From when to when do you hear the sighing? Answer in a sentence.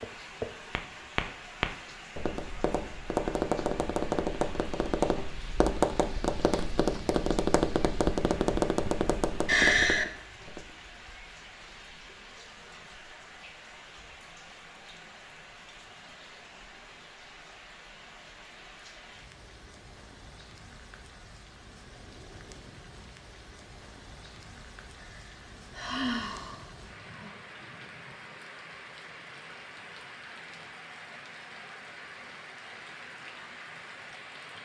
The sighing can be heard from 9.4 to 10.1 s and from 25.0 to 27.4 s.